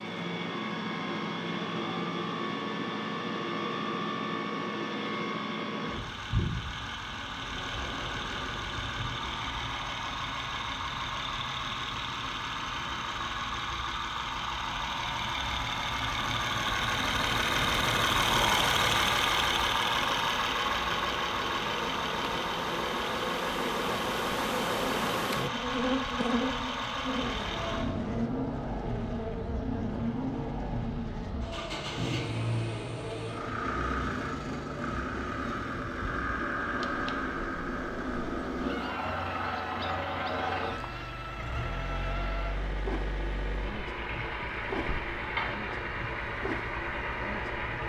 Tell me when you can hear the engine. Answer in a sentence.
The engine can be heard from 0.0 to 47.8 s.